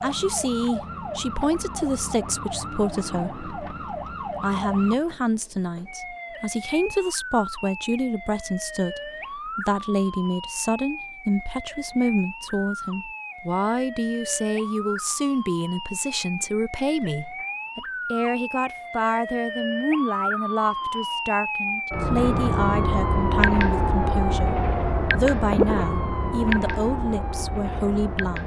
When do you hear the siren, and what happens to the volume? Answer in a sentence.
The siren can be heard from 0.0 to 28.4 s, getting louder.